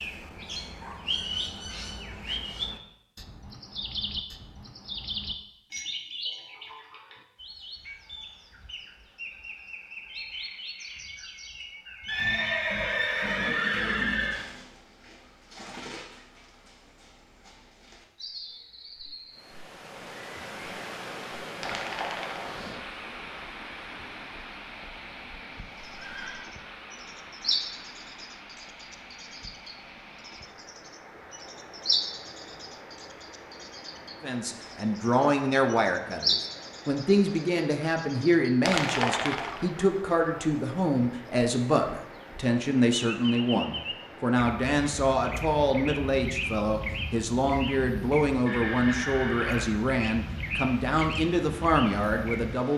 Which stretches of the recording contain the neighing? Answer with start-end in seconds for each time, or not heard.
12.1-14.4, 25.9-26.5, 48.5-49.9.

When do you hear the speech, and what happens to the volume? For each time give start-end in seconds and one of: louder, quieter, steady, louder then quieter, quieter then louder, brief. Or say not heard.
34.2-52.7 steady.